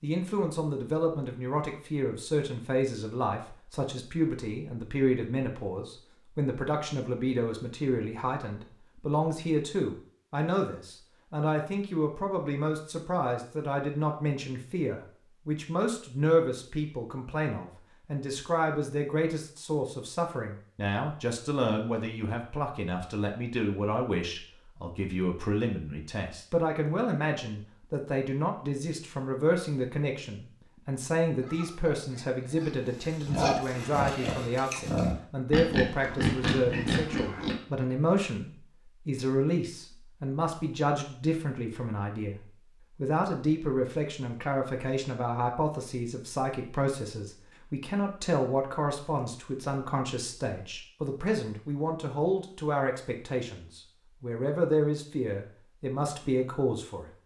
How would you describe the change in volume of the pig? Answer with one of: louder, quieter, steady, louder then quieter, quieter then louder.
louder.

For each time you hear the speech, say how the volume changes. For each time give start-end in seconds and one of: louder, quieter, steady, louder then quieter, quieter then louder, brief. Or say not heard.
0.0-57.1 steady.